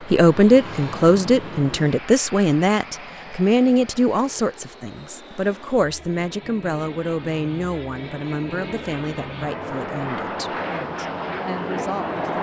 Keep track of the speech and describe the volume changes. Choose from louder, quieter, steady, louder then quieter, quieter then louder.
quieter.